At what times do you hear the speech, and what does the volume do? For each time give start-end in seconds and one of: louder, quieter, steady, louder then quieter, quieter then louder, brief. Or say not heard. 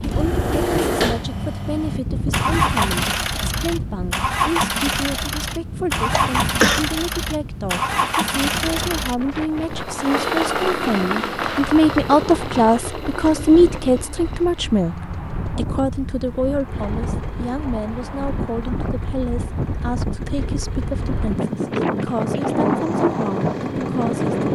0.0-24.5 louder then quieter.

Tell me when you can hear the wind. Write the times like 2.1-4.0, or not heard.
0.0-24.5.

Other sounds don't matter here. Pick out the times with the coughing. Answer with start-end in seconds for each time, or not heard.
6.0-6.8.